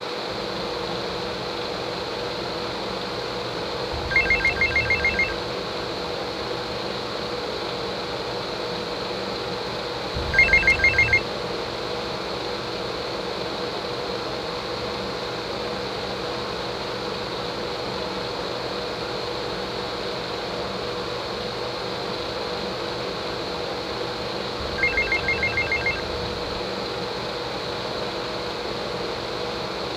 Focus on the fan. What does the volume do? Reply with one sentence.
The loudness of the fan stays about the same.